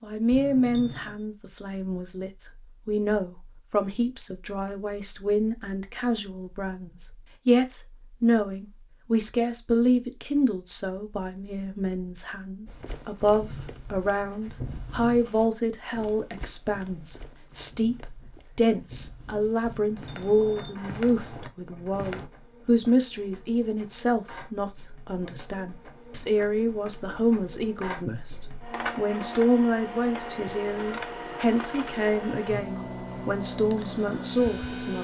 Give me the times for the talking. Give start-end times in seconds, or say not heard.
0.0-34.9.